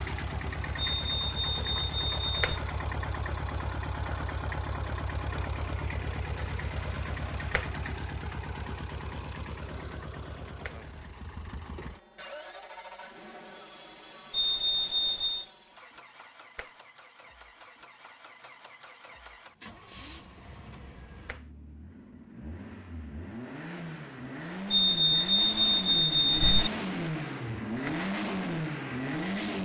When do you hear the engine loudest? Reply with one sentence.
The loudest moment of the engine is at 28 seconds.